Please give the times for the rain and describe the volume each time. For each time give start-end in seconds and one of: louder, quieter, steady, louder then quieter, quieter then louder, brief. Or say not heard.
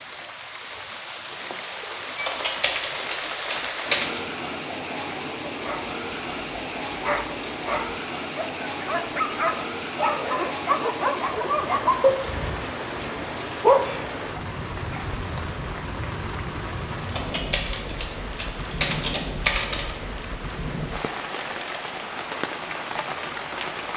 0.0-23.9 steady.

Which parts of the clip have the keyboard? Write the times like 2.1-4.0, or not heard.
2.1-4.2, 17.1-19.9.